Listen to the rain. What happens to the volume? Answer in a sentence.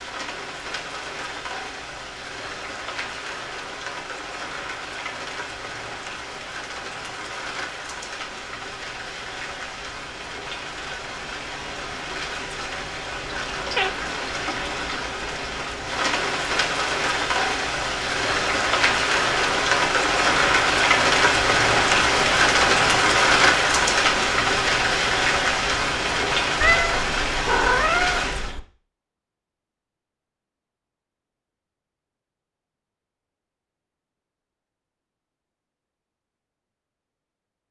The volume of the rain goes up.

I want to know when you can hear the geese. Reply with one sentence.
The geese can't be heard in this clip.